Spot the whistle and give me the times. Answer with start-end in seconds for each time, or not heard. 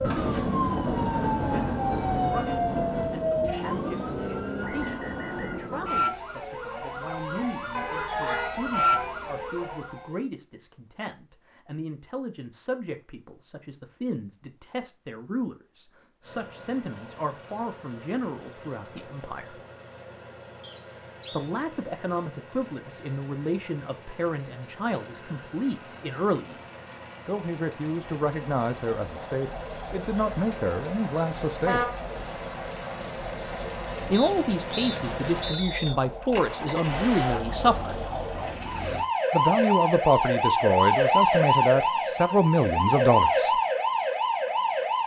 4.6-5.7, 20.6-21.5, 34.1-36.0.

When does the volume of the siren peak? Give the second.
41 s.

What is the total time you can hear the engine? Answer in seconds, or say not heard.
23 s.